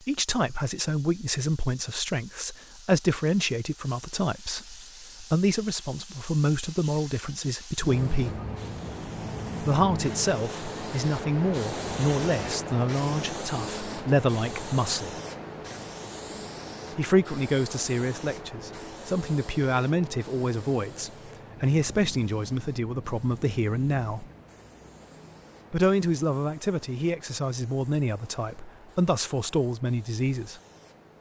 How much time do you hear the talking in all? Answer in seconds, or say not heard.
26 s.